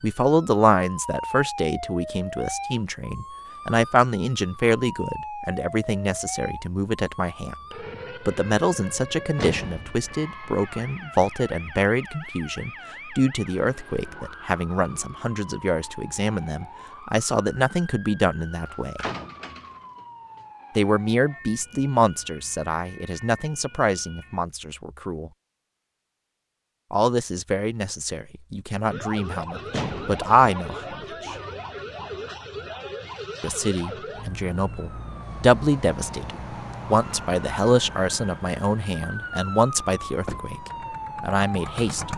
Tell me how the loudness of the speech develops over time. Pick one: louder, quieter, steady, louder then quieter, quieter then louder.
steady.